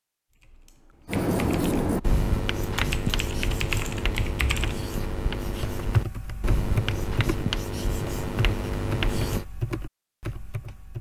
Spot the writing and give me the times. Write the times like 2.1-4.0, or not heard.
1.1-9.4.